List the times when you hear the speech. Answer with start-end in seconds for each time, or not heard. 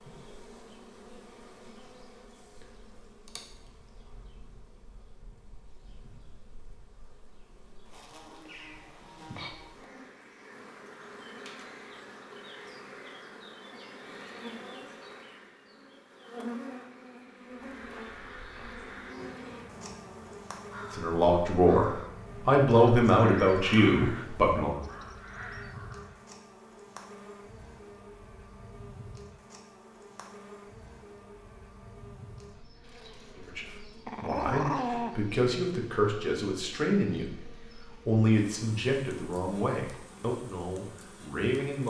20.9-24.8, 33.4-41.8.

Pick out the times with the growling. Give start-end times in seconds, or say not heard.
34.0-35.1.